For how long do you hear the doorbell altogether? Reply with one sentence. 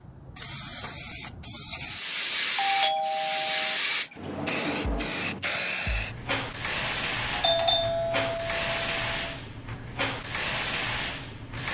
You can hear the doorbell for 3 seconds altogether.